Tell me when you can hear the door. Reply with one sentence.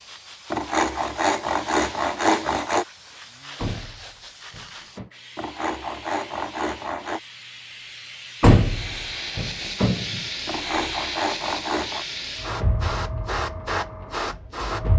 You can hear the door from 3.5 to 5.1 s and from 8.4 to 10.2 s.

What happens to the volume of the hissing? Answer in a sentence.
The volume of the hissing goes up.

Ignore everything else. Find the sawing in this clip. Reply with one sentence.
The sawing can be heard from 0.5 to 2.9 s, from 5.3 to 7.2 s and from 10.4 to 12.1 s.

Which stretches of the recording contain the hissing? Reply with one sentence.
You can hear the hissing from 0.0 to 14.9 s.